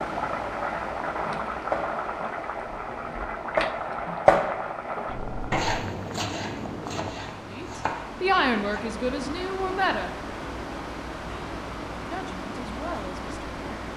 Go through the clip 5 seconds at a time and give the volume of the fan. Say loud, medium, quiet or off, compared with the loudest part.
medium, loud, loud.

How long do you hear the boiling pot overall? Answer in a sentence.
You can hear the boiling pot for 7 seconds altogether.